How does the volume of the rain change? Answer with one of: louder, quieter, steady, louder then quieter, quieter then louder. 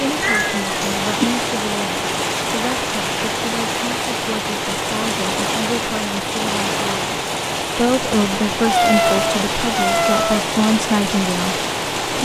steady.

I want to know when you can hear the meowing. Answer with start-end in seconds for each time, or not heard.
0.1-1.4, 8.6-10.4.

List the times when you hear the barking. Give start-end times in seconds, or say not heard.
not heard.